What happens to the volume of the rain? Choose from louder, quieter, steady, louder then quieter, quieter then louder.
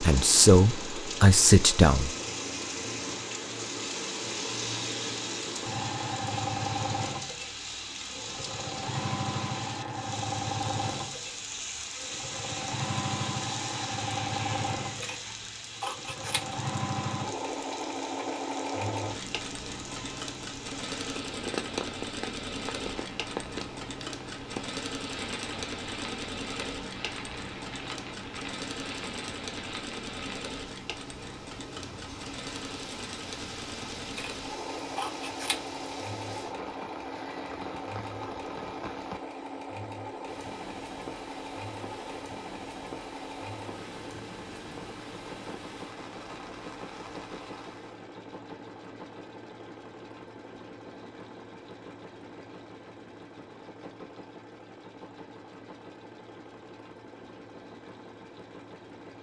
quieter.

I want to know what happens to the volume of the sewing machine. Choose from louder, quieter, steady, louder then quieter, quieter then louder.
quieter.